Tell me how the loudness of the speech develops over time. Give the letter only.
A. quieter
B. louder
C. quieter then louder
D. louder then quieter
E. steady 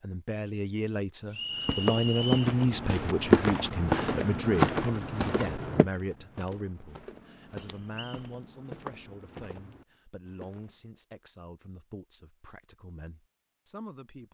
A.